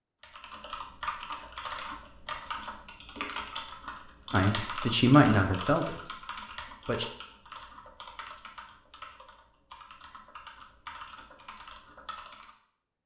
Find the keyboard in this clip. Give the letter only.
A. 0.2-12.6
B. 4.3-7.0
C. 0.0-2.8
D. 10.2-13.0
A.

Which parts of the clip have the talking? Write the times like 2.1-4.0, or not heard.
4.3-7.0.